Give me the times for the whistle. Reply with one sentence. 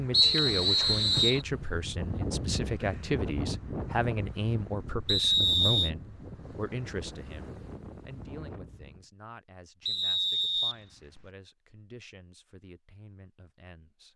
You can hear the whistle from 0.1 to 1.4 s, from 5.0 to 5.9 s and from 9.8 to 11.2 s.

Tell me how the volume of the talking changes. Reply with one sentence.
The loudness of the talking goes down.